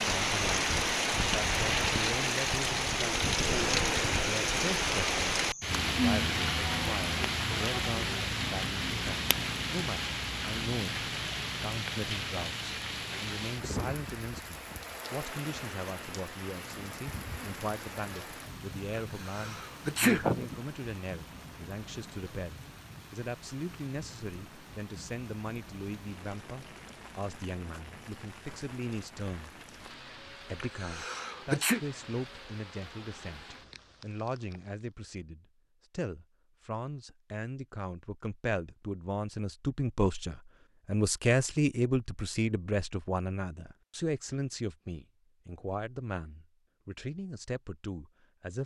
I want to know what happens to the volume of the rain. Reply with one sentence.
The volume of the rain goes down.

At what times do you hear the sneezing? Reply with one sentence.
You can hear the sneezing from 19.2 to 20.6 s and from 30.6 to 31.8 s.